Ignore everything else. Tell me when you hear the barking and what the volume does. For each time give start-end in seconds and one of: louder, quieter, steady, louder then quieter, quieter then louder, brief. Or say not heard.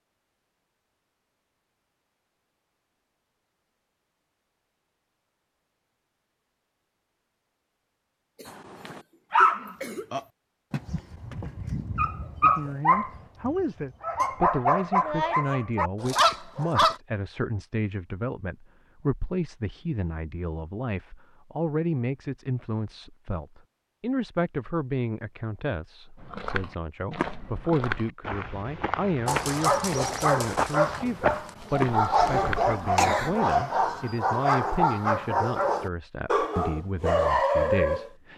8.4-16.9 quieter then louder
29.2-38.1 steady.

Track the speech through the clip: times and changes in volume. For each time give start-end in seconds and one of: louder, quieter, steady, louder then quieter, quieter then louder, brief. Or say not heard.
12.4-38.3 steady.